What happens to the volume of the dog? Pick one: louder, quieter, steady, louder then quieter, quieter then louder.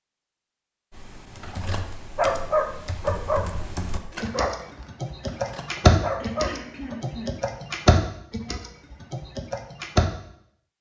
quieter then louder.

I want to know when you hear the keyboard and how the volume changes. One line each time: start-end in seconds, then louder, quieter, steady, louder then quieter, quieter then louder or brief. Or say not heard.
0.9-10.1 louder then quieter.